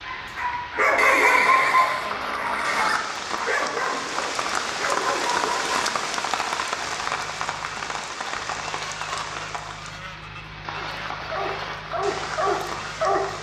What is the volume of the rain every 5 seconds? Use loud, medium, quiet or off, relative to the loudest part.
loud, loud, medium.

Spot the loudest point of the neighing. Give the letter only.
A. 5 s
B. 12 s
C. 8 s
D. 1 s
D.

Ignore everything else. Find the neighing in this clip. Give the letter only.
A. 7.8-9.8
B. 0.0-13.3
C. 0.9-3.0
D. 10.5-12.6
C.